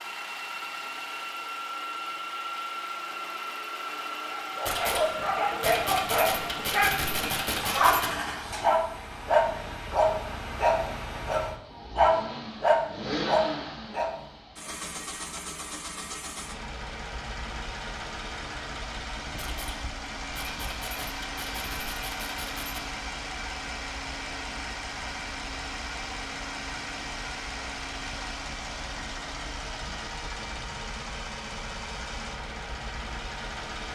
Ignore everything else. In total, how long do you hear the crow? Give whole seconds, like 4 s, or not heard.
not heard.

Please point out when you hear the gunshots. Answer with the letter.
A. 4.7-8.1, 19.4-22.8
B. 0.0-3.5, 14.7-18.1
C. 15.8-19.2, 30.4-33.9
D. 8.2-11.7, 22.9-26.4
A.